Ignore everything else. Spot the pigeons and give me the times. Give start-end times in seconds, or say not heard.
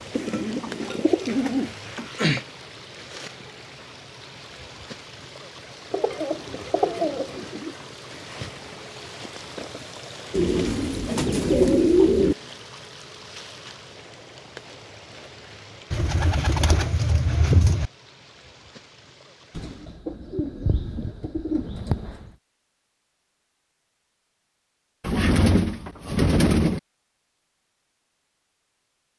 0.1-2.5, 5.9-7.8, 10.3-12.3, 15.9-17.9, 19.6-22.3, 25.0-26.8.